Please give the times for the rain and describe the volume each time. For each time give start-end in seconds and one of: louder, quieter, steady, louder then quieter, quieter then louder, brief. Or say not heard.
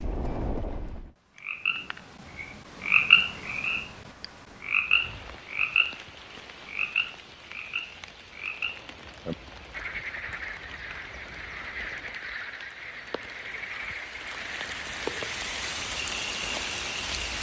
4.8-17.3 louder.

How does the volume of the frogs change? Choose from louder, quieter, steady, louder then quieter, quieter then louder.
quieter.